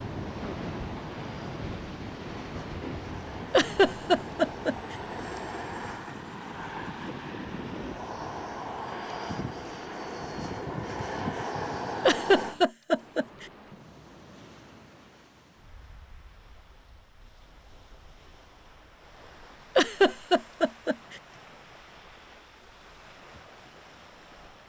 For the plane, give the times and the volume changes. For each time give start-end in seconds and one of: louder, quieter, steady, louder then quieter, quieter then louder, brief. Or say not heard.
0.1-12.6 louder.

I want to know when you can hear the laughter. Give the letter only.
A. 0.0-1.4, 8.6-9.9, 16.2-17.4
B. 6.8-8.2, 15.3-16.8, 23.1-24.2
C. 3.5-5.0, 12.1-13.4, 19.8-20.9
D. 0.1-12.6
C.